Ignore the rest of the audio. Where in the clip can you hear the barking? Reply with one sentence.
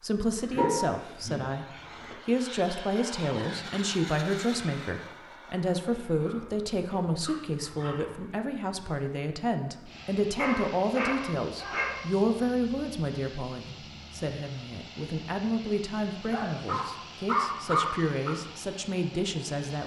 You can hear the barking from 0.5 to 2.1 s, from 6.2 to 8.2 s, from 10.3 to 11.9 s and from 16.3 to 18.3 s.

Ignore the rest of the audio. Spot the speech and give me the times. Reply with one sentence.
The speech can be heard from 0.0 to 1.6 s and from 2.2 to 19.8 s.